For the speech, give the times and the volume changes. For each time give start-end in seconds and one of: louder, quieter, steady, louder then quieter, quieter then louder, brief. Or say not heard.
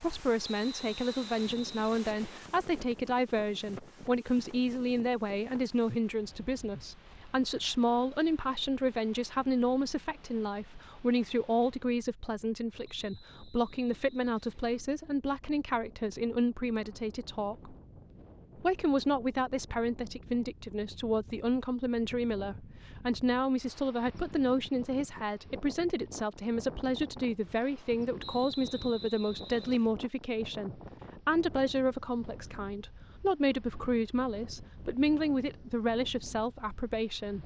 0.0-17.8 steady
18.6-37.4 steady.